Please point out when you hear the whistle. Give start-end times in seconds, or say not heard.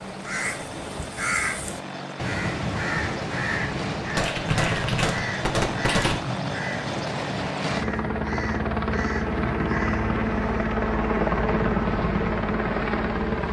not heard.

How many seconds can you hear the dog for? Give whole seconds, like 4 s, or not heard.
not heard.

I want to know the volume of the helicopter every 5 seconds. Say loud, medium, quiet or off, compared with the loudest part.
medium, loud, loud.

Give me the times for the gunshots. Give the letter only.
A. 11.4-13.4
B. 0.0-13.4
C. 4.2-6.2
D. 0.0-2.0
C.